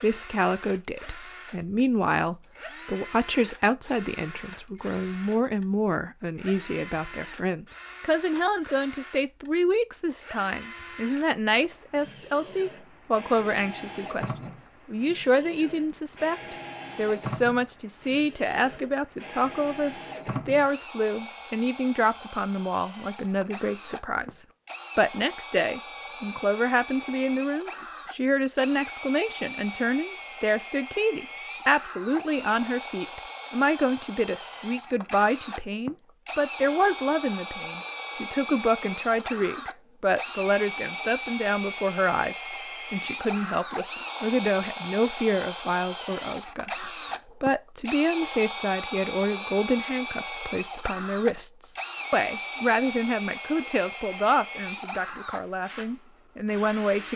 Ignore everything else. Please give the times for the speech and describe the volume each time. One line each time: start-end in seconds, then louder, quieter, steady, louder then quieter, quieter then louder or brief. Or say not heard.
0.0-57.1 steady.